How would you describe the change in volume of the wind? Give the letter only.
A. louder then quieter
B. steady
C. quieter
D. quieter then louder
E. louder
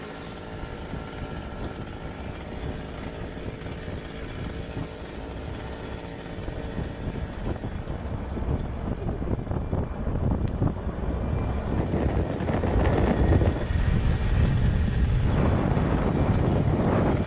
E.